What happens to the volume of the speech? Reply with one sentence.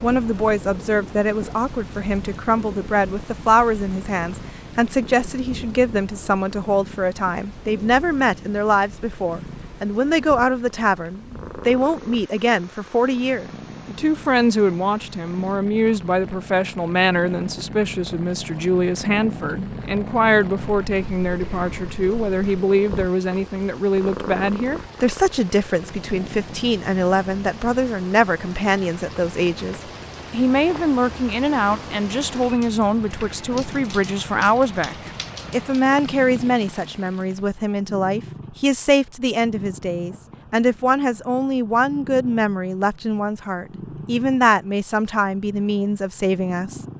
The loudness of the speech stays about the same.